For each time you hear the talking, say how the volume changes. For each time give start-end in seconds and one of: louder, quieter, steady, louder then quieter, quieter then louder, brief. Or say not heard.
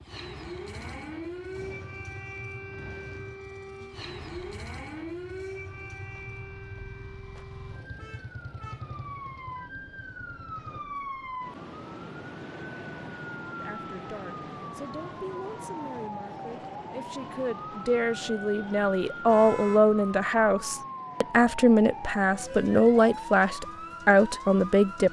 13.5-25.0 louder.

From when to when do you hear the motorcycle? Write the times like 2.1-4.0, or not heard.
0.0-10.8.